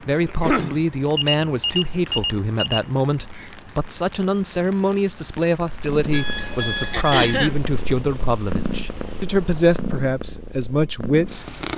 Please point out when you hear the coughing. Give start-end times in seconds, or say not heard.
0.2-0.8, 6.9-7.6.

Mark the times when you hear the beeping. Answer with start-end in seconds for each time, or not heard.
1.1-2.9, 6.1-7.5.